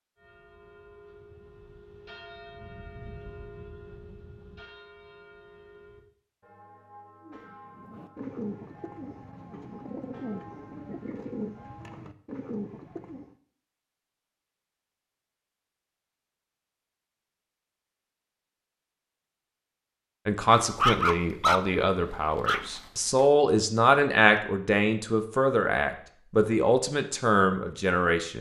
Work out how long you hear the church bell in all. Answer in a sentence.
The church bell can be heard for 12 seconds in total.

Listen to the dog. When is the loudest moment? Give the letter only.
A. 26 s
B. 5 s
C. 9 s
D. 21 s
D.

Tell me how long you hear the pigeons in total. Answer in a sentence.
You can hear the pigeons for 6 seconds altogether.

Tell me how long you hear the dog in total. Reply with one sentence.
You can hear the dog for 2 seconds altogether.